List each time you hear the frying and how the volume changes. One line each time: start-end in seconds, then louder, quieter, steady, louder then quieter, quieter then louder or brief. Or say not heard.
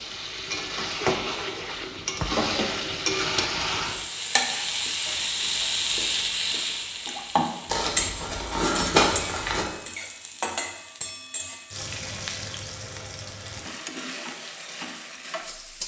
0.0-15.8 quieter.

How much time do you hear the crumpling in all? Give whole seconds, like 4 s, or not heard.
2 s.